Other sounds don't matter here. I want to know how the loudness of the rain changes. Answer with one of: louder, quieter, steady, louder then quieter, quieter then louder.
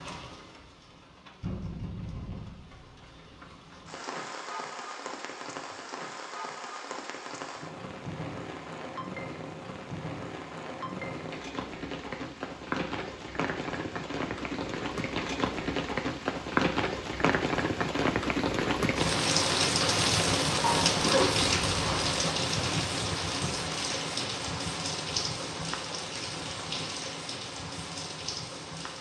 louder then quieter.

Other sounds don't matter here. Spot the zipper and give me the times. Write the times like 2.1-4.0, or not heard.
20.6-22.2.